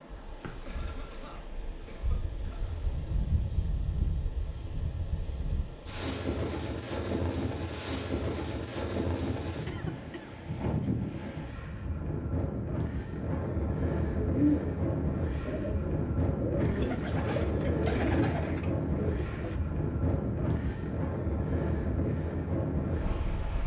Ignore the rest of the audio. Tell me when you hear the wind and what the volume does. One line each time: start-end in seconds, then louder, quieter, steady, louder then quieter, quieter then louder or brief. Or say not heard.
0.0-23.6 louder.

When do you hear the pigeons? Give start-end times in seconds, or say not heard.
14.2-19.6.